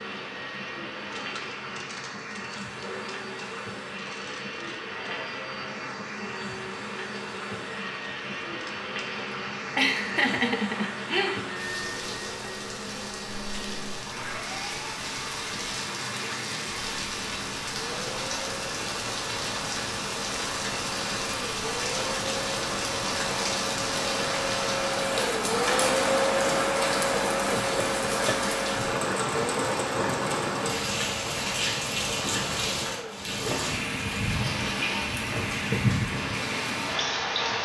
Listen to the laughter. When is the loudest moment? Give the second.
10 s.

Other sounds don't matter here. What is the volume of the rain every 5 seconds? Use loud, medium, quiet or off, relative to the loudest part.
medium, medium, medium, medium, loud, loud, loud, loud.